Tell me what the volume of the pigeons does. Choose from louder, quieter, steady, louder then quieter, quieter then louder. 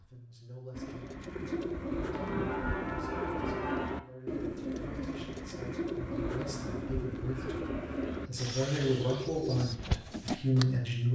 steady.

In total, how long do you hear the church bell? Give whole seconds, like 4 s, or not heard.
2 s.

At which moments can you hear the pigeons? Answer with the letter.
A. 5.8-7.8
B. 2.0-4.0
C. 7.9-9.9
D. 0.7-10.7
D.